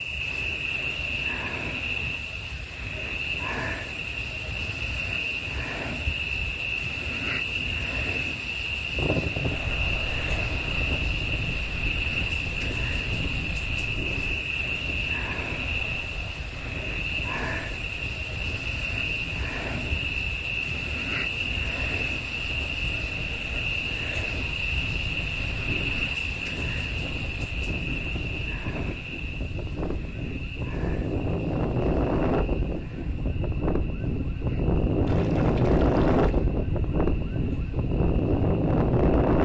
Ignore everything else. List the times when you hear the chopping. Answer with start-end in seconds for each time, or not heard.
not heard.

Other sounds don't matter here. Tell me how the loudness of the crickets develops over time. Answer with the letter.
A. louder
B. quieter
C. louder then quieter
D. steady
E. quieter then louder
B.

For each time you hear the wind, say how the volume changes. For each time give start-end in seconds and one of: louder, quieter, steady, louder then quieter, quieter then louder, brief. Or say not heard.
8.8-39.3 quieter then louder.